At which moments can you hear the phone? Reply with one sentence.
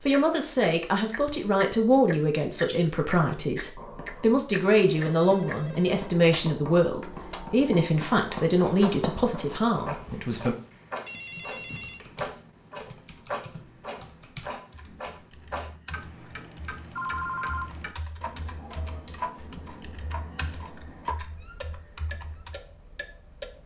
You can hear the phone from 5.0 to 6.0 s, from 10.3 to 12.0 s and from 16.9 to 17.7 s.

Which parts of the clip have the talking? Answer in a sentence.
You can hear the talking from 0.0 to 10.6 s.